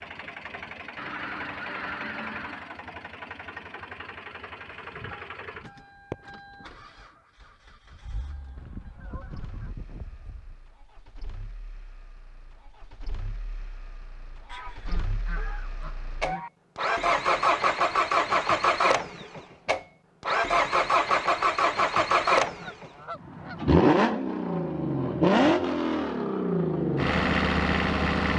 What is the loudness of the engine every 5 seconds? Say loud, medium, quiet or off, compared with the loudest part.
quiet, quiet, quiet, loud, loud, loud.